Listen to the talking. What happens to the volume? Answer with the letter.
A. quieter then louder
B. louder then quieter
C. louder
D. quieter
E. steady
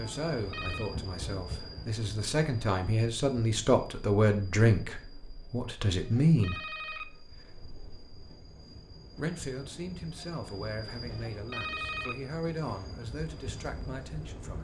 B.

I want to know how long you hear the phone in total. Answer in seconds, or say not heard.
3 s.